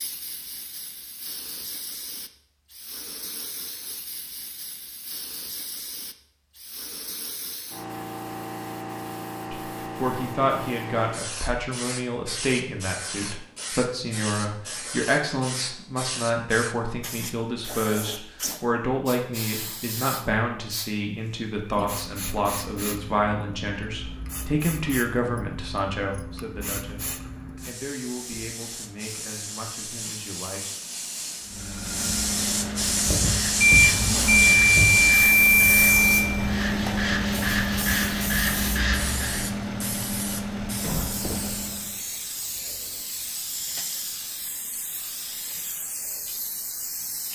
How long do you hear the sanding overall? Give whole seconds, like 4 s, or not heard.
7 s.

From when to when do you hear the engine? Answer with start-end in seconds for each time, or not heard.
31.4-42.0.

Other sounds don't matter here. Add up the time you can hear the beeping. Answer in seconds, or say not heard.
3 s.